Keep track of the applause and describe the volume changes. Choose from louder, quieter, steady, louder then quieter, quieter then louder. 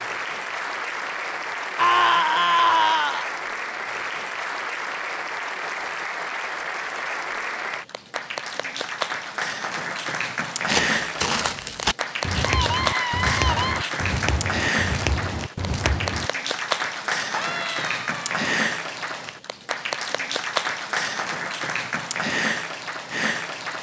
steady.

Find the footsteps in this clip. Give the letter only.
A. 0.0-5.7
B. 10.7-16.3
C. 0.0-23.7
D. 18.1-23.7
B.